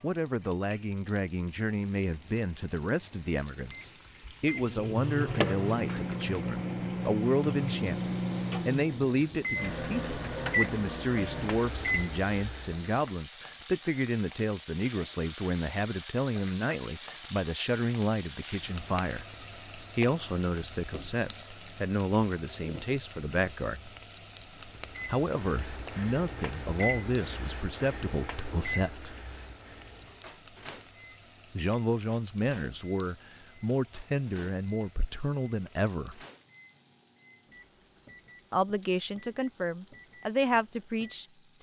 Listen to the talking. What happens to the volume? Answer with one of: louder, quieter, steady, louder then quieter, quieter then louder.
steady.